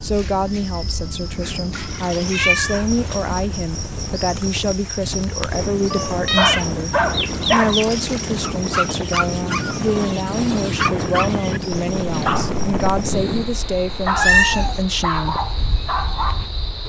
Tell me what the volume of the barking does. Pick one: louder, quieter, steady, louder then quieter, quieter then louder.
steady.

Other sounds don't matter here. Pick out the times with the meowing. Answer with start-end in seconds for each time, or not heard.
2.1-3.1, 5.9-7.9, 14.2-14.8.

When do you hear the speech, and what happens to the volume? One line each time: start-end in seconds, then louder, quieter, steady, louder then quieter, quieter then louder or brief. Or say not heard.
0.0-15.3 steady.